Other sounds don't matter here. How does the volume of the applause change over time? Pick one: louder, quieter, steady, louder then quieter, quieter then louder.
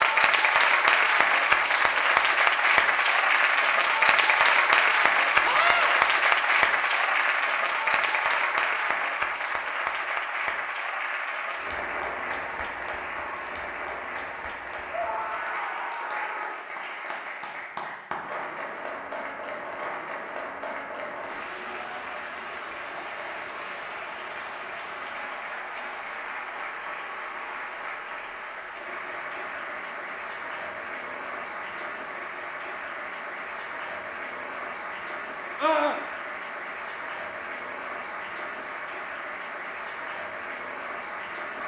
quieter.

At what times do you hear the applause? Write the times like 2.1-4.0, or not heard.
0.0-41.6.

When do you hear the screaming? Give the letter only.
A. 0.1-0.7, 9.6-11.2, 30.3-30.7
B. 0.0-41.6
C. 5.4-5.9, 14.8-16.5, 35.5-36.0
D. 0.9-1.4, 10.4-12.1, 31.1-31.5
C.